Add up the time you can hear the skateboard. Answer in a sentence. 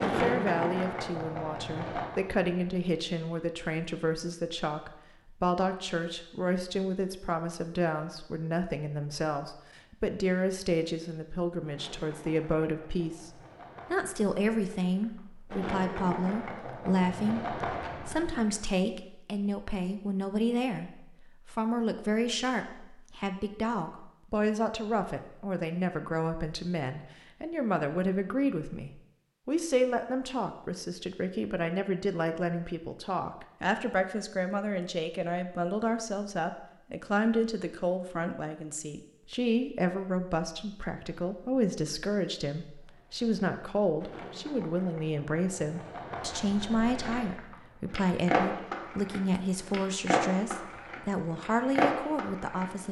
The skateboard can be heard for 20 seconds in total.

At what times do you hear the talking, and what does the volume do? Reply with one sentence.
You can hear the talking from 0.1 to 52.8 s, at a steady volume.